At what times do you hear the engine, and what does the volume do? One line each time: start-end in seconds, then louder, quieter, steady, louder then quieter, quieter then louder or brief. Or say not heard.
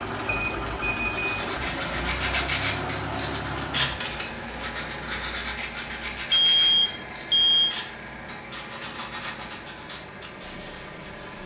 0.0-11.4 quieter.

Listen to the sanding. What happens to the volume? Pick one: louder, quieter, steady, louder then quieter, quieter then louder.
quieter.